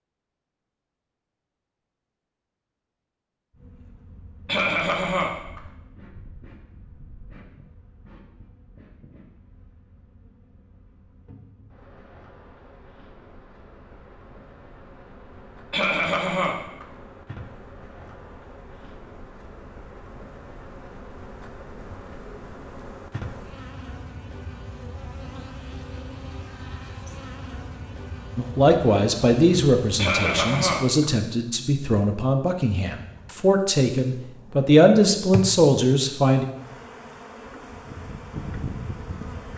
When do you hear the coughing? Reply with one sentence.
You can hear the coughing from 4.5 to 5.6 s, from 15.7 to 16.9 s and from 29.9 to 31.1 s.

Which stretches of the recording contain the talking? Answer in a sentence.
You can hear the talking from 28.4 to 36.5 s.